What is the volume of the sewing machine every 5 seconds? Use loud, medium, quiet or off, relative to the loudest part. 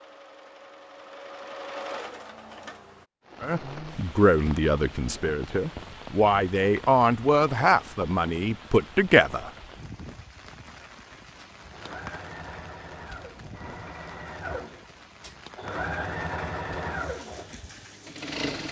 medium, off, medium, loud.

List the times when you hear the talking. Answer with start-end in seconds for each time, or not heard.
3.4-9.5.